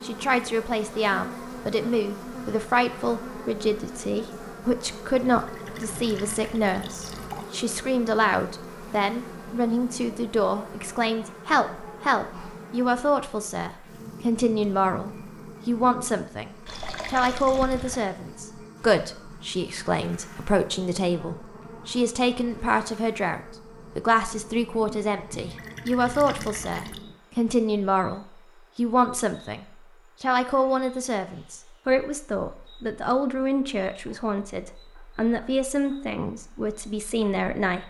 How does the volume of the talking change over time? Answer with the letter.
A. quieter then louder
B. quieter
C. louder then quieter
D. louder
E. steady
E.